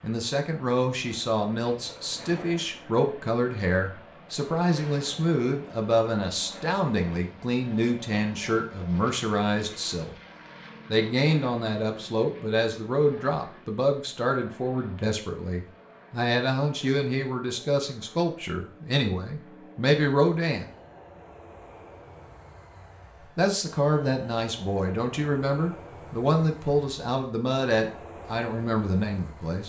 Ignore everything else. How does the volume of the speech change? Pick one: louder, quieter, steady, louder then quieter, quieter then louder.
steady.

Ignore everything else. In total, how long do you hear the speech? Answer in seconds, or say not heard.
26 s.